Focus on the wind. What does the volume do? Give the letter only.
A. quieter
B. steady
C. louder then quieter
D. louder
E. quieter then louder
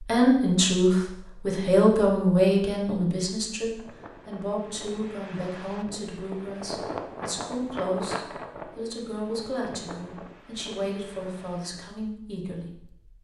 C.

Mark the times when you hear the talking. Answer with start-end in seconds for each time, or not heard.
0.0-12.7.